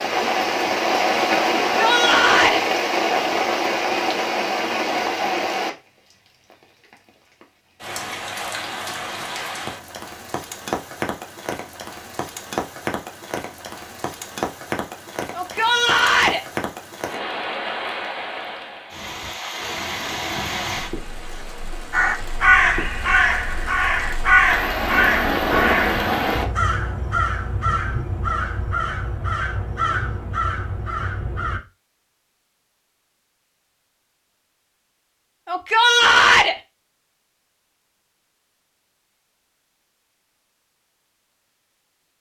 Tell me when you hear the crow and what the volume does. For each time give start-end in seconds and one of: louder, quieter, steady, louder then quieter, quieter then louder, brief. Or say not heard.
21.9-31.6 quieter.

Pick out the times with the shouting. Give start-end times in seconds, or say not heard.
1.6-2.6, 15.3-16.4, 35.5-36.5.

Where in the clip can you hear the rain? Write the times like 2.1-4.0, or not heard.
0.0-26.4.